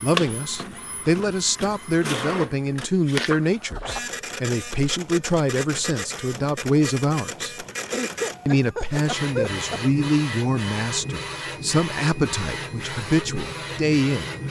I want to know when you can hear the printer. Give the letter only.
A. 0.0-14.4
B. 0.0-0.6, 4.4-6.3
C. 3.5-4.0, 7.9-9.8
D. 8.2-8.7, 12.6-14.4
A.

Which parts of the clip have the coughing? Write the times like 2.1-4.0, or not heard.
3.5-4.0, 7.9-9.8.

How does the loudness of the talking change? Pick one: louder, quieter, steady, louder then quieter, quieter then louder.
steady.